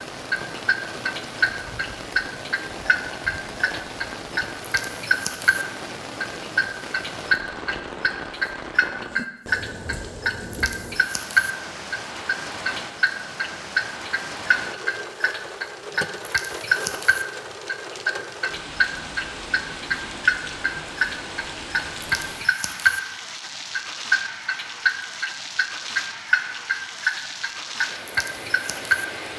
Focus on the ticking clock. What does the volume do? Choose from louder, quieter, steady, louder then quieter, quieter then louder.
steady.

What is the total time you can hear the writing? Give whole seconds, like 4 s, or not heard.
not heard.